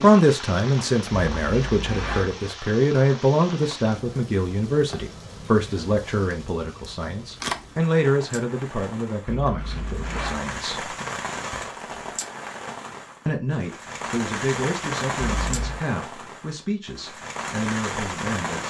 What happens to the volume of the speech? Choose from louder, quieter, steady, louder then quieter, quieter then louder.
quieter.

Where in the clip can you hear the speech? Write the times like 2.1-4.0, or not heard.
0.0-10.9, 13.2-18.6.